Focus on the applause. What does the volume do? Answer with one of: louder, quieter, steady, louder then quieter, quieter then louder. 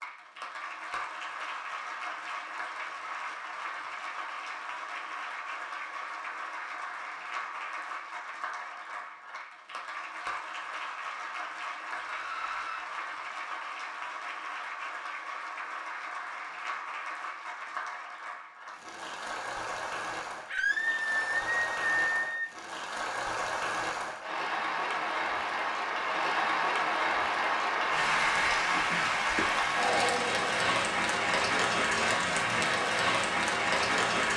louder.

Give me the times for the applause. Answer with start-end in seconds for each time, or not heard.
0.0-34.3.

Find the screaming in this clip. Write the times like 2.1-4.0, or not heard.
12.0-12.8, 20.4-22.4.